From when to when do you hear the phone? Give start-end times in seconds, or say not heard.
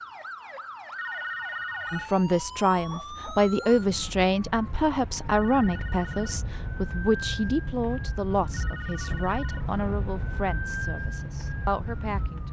0.9-2.1, 5.2-6.4, 8.5-9.7.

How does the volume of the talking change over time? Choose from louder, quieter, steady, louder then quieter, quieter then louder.
quieter.